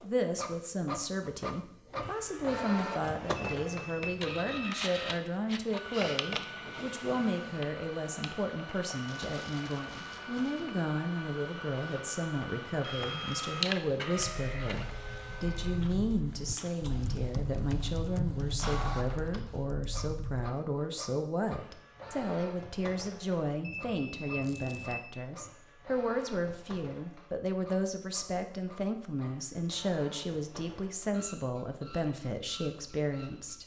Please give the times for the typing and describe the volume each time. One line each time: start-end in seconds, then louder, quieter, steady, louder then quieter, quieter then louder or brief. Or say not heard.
14.2-20.4 louder then quieter.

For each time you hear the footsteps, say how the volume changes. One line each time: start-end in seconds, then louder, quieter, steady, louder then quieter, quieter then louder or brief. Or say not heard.
not heard.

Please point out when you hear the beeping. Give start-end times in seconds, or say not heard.
3.4-4.8, 23.6-25.1.